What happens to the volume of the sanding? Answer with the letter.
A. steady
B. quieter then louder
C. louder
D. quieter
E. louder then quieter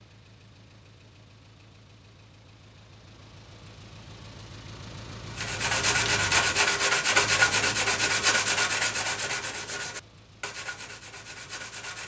D.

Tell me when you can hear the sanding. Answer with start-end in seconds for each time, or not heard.
5.3-12.0.